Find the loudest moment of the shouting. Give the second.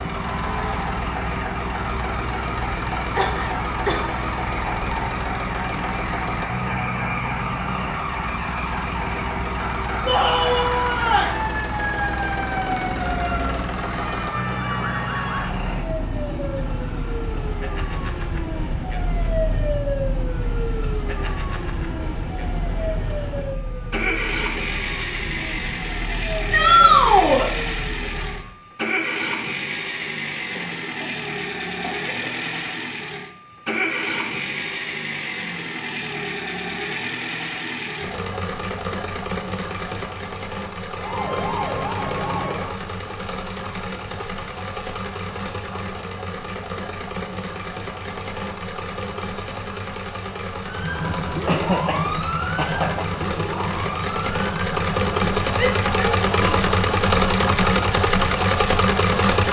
27 s.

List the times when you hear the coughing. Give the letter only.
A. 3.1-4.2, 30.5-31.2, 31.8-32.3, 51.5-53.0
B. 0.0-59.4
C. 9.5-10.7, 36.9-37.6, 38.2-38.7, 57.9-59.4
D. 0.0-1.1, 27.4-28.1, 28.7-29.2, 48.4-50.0
A.